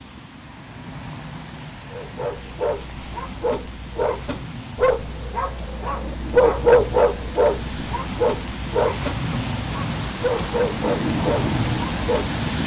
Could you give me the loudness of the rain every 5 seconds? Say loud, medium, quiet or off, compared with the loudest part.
quiet, medium, loud.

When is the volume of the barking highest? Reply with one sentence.
The volume of the barking peaks at 7 seconds.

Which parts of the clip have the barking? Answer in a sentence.
You can hear the barking from 1.9 to 12.4 s.